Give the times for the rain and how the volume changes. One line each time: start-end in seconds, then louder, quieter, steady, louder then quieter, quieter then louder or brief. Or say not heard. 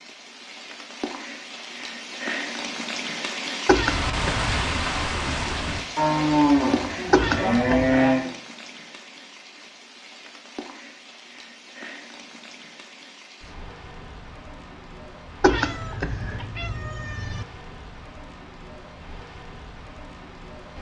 0.0-20.7 quieter.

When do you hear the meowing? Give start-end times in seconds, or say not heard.
3.6-4.8, 7.1-8.0, 15.4-17.4.